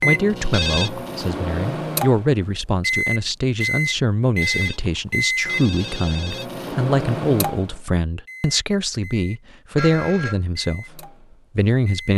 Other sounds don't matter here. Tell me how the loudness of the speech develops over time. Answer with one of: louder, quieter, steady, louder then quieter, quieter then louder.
steady.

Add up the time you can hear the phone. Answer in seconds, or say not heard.
3 s.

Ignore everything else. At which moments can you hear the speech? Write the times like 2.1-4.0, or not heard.
0.0-12.1.